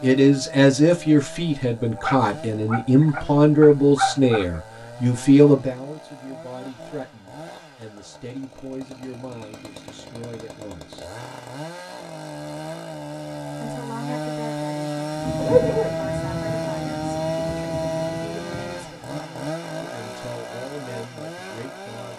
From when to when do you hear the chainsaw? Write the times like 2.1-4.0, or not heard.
0.0-22.1.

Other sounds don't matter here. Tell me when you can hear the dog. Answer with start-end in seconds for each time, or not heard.
1.9-4.6, 15.3-16.0.